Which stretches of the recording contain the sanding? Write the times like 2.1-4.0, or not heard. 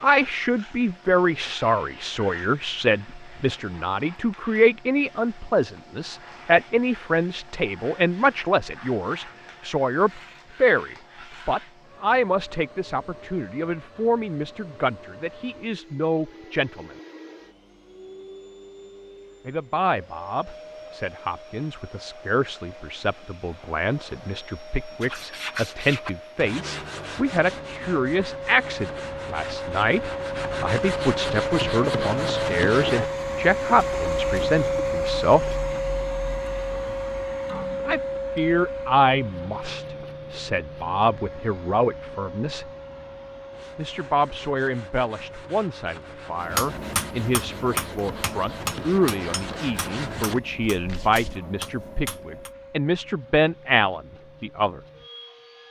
25.0-33.1, 43.5-51.4.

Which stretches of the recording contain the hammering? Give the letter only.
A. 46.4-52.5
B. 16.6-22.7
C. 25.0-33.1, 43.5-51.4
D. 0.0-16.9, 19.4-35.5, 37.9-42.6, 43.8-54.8
A.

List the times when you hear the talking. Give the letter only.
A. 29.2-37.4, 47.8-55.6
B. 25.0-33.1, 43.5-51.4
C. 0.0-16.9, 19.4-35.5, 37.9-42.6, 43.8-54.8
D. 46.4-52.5
C.